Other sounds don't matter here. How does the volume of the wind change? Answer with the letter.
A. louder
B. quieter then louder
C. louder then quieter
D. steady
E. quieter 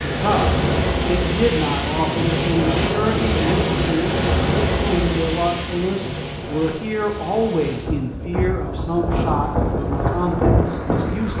B.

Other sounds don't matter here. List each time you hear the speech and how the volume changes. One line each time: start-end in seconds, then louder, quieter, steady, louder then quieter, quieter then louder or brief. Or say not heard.
0.1-11.3 steady.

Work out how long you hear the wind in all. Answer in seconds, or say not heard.
11 s.